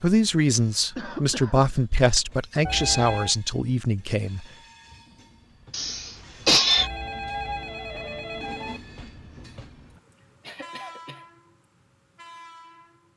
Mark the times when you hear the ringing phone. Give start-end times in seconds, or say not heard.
2.6-3.4, 6.8-8.8.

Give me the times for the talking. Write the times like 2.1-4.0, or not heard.
0.0-4.5.